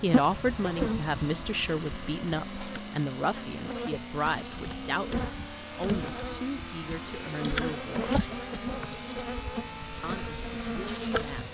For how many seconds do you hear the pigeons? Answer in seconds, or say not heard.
not heard.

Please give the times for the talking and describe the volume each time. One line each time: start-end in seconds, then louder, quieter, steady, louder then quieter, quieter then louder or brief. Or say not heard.
0.0-8.2 quieter
10.0-11.4 brief.